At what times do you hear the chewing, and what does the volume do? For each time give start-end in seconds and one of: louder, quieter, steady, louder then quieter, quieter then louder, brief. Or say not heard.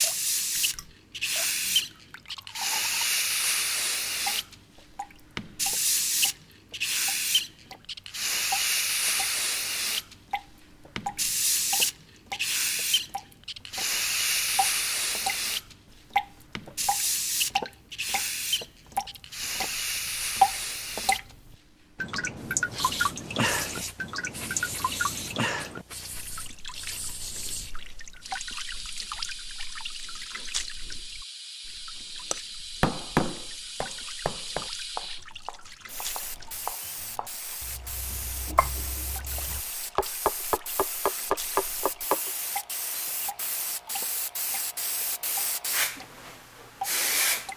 not heard.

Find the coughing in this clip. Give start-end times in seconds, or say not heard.
not heard.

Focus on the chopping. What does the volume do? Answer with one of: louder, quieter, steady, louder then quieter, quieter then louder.
quieter then louder.